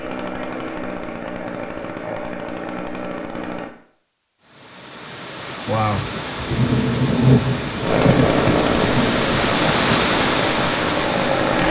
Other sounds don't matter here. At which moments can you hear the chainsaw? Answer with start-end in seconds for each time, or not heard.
0.0-3.7, 7.8-11.6.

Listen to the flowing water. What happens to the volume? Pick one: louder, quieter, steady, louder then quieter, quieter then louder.
louder.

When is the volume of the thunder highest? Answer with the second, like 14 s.
7 s.